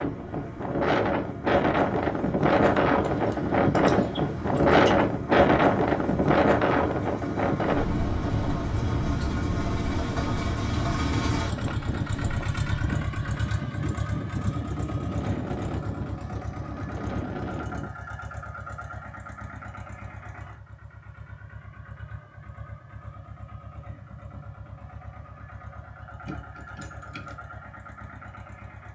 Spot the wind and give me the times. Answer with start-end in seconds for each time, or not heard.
0.0-17.9.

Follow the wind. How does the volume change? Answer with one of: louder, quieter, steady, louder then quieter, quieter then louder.
quieter.